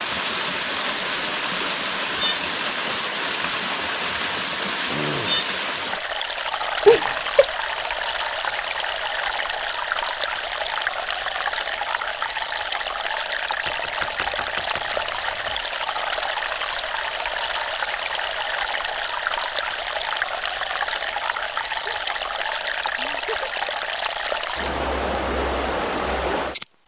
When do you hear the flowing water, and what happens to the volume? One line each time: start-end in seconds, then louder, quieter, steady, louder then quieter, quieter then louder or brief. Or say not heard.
0.0-26.6 steady.